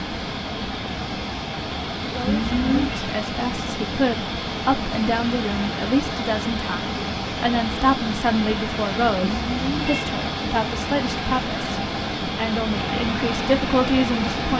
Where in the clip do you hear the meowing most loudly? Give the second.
3 s.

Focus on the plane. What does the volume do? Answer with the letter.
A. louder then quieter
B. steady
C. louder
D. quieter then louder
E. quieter
B.